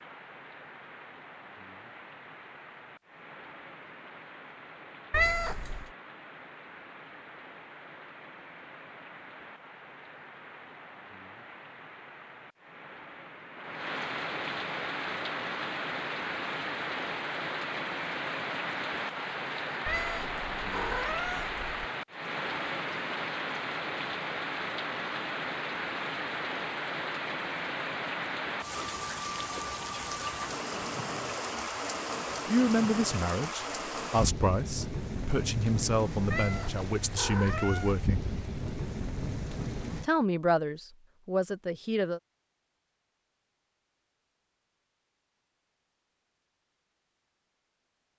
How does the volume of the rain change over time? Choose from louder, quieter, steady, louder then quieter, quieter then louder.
louder.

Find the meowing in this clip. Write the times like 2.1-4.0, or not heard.
5.1-5.9, 19.9-21.6, 36.3-38.0.